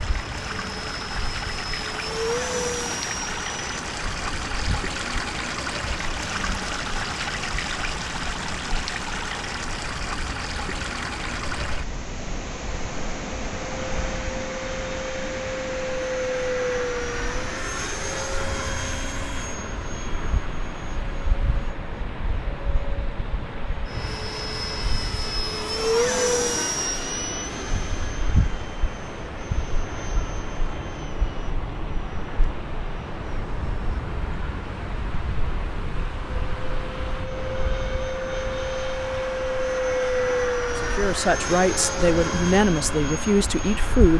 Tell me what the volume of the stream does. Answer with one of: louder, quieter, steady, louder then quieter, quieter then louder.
quieter.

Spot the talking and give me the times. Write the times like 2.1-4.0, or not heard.
40.8-44.1.